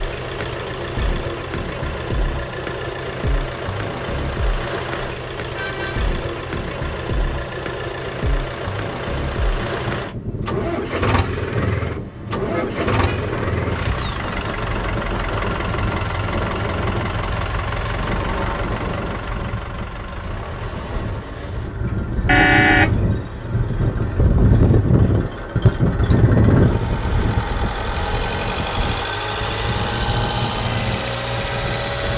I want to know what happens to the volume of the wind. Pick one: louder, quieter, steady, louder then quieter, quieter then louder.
louder then quieter.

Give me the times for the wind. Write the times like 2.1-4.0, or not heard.
9.4-32.1.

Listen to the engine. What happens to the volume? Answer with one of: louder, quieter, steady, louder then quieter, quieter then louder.
quieter then louder.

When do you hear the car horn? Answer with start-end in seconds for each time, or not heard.
5.5-6.1, 12.5-13.2, 22.2-23.0.